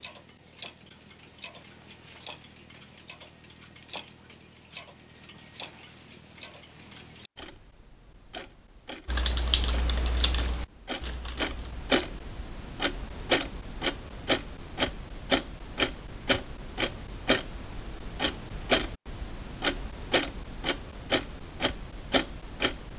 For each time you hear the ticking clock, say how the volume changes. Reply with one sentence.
You can hear the ticking clock from 0.0 to 22.9 s, getting louder.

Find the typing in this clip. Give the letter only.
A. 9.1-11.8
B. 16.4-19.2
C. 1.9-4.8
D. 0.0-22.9
A.